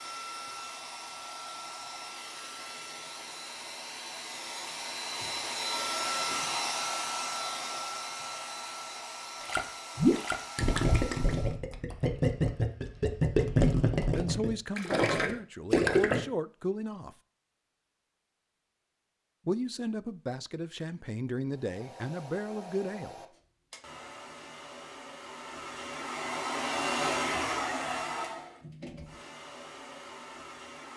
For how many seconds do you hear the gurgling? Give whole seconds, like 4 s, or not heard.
7 s.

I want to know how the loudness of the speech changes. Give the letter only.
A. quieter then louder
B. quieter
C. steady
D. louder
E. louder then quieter
C.